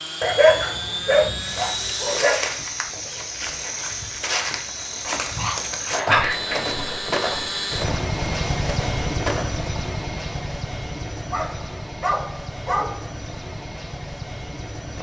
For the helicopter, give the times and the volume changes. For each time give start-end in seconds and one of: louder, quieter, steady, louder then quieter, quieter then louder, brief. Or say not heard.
0.0-2.2 brief
6.2-14.9 quieter.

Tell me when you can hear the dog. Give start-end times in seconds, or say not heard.
0.2-2.4, 5.0-6.7, 11.3-13.1.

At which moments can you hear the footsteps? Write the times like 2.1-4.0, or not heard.
1.4-9.6.